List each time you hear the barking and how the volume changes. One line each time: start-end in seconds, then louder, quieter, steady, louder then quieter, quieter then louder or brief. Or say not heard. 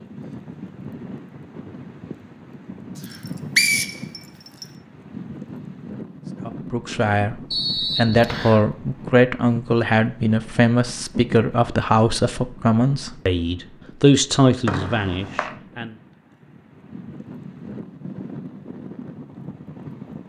not heard.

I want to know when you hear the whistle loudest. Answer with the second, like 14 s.
4 s.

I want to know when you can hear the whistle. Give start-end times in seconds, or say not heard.
3.1-4.7, 7.5-8.7, 14.7-15.6.